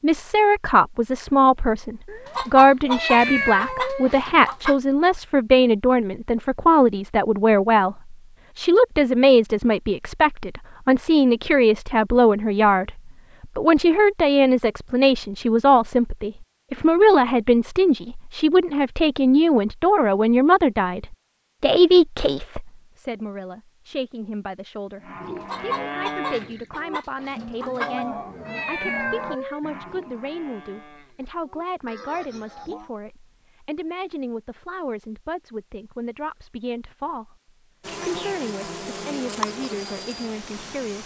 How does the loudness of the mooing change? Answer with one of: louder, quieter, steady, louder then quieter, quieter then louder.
quieter.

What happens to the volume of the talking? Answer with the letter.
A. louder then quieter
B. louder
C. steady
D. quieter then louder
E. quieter
E.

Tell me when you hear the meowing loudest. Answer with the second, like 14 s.
3 s.